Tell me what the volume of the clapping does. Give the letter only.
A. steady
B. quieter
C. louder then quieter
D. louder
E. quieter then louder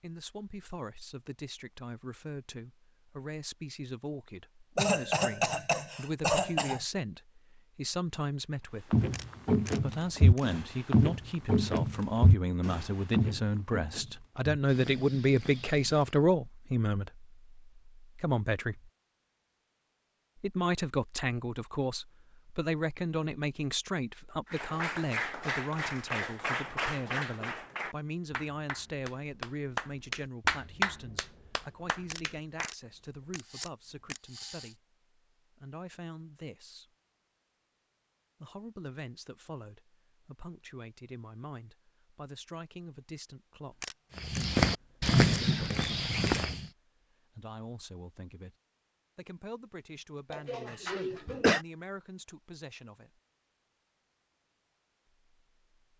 E.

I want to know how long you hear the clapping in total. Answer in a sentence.
You can hear the clapping for 8 seconds altogether.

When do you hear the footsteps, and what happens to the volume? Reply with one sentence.
You can hear the footsteps from 8.9 to 16.1 s, getting quieter; and briefly from 44.1 to 46.6 s.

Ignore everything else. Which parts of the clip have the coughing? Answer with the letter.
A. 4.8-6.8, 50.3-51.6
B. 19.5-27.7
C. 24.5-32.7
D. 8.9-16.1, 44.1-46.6
A.